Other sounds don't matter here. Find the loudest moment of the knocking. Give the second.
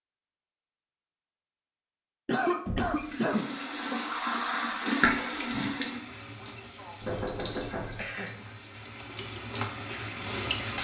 7 s.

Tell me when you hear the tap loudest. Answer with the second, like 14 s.
5 s.